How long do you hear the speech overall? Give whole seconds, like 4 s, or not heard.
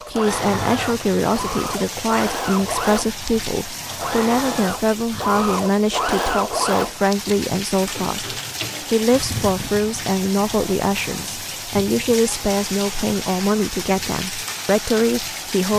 16 s.